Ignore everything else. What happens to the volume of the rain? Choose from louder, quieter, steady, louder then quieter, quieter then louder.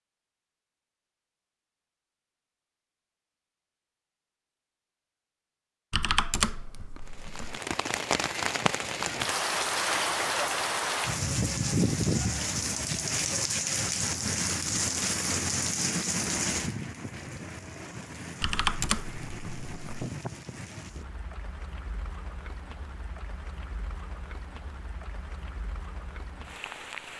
quieter.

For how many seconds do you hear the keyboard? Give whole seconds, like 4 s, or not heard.
3 s.